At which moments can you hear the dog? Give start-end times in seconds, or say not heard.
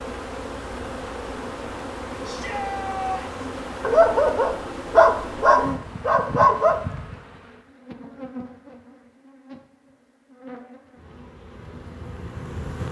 3.8-6.8.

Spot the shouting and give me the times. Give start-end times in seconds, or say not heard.
2.2-3.4.